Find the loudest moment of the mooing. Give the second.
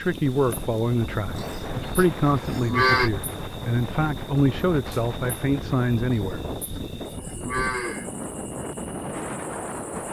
3 s.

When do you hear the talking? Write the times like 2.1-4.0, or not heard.
0.0-6.4.